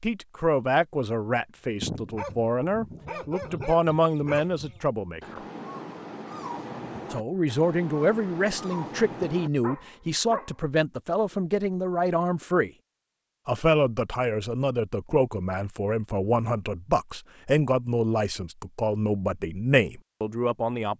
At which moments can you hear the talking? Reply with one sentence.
The talking can be heard from 0.0 to 5.4 s, from 7.1 to 12.7 s and from 13.4 to 20.9 s.